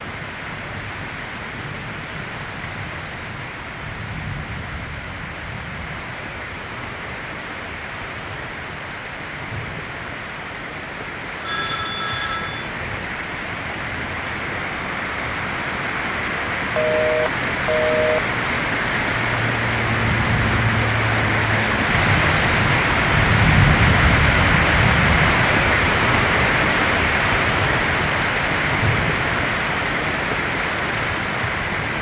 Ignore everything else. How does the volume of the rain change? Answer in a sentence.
The loudness of the rain goes up.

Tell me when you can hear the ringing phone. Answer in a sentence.
The ringing phone can be heard from 11.4 to 12.7 s and from 16.8 to 18.3 s.